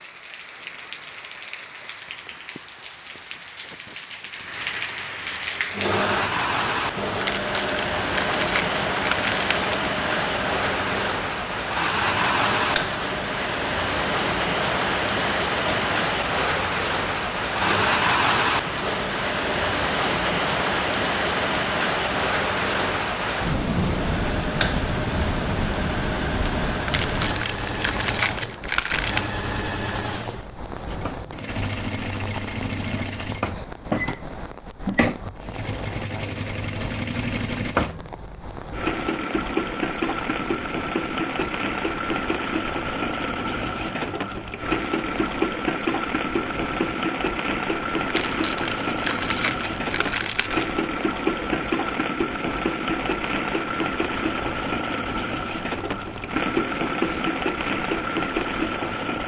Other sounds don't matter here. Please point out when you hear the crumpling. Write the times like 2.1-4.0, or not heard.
7.2-9.8, 26.9-29.4, 48.1-50.7.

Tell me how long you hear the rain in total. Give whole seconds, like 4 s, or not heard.
59 s.